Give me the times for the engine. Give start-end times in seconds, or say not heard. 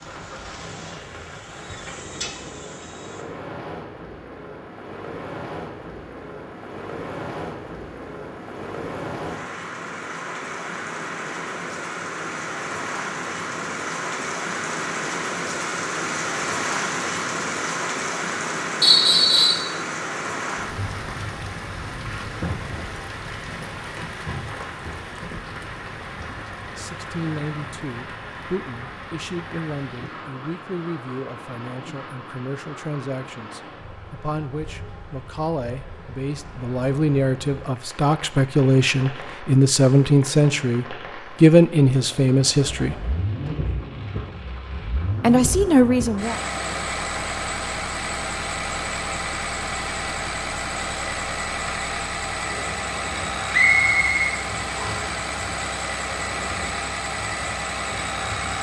0.0-3.2, 42.9-58.5.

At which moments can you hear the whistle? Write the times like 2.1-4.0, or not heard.
18.8-19.6, 53.5-55.0.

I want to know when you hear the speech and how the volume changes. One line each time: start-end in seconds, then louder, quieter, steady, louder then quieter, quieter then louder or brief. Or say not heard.
26.4-43.0 louder
45.2-46.4 brief.